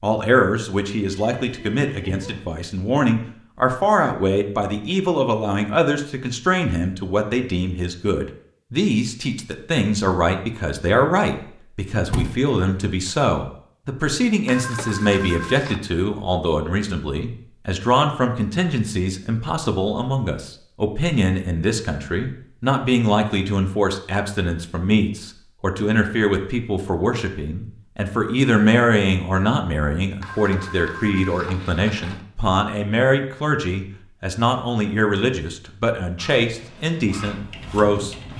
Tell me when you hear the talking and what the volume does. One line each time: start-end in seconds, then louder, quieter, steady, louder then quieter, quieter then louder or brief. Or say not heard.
0.0-38.1 steady.